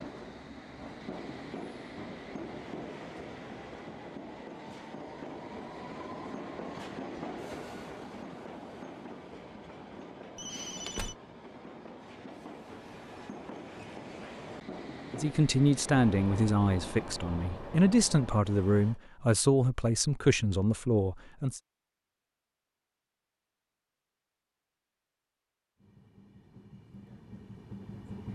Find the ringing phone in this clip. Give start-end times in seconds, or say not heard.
10.3-11.2.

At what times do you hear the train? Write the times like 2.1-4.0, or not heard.
0.0-19.0, 25.8-28.3.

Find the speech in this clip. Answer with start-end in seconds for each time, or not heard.
15.2-21.6.